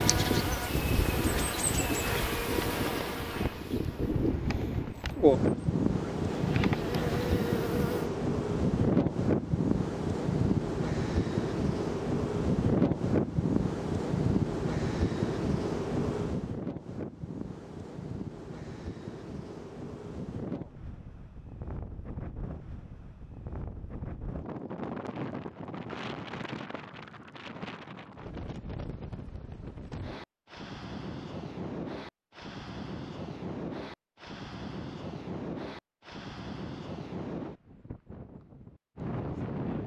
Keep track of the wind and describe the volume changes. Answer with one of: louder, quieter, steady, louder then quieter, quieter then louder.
quieter.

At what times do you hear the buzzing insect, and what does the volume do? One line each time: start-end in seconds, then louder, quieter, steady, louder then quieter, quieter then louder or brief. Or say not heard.
0.0-8.1 quieter then louder.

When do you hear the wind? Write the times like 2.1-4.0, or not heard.
0.0-39.8.